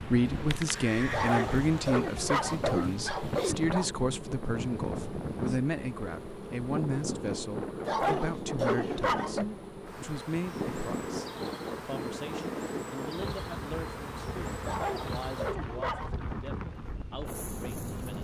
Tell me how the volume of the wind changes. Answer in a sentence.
The volume of the wind stays about the same.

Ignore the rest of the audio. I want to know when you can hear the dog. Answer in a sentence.
The dog can be heard from 1.1 to 3.9 s, from 7.8 to 9.4 s and from 14.7 to 16.1 s.